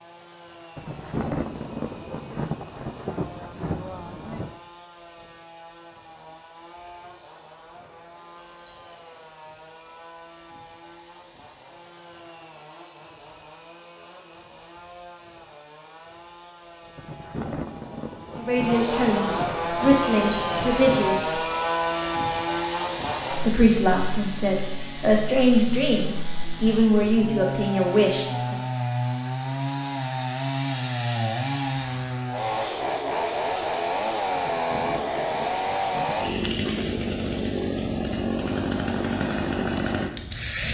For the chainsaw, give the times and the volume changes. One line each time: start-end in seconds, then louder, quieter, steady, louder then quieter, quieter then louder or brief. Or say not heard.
0.0-40.7 louder.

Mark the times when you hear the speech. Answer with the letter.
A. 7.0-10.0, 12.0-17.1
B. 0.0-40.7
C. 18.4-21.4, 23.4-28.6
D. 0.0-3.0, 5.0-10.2
C.